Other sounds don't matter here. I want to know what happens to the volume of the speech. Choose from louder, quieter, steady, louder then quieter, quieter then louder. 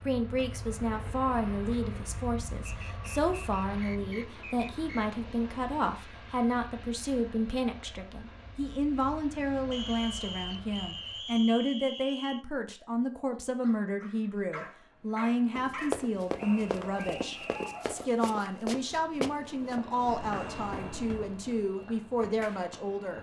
steady.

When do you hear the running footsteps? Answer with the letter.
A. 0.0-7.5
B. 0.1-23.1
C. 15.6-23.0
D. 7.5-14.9
C.